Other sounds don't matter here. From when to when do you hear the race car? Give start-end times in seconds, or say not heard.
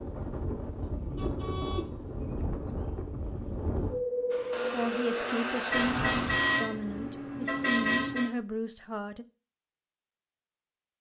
4.3-6.6.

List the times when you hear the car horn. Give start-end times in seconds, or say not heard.
0.8-2.9, 5.7-8.3.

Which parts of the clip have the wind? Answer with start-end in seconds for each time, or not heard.
0.0-6.3.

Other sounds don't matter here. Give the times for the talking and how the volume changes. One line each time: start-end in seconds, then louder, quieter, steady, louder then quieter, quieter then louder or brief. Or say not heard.
4.7-9.2 steady.